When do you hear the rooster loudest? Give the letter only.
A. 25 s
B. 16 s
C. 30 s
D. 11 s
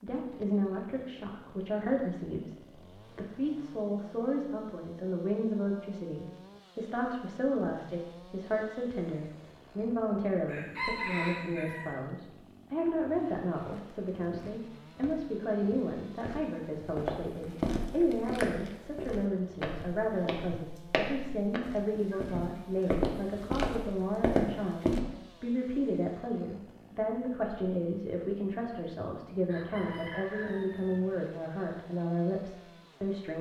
D.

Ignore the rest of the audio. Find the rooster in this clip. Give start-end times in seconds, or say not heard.
10.4-11.9, 29.4-31.0.